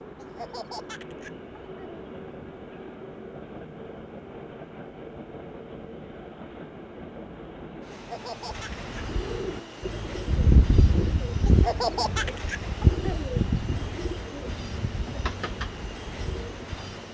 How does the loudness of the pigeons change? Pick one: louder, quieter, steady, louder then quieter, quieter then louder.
louder then quieter.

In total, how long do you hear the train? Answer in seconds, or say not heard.
17 s.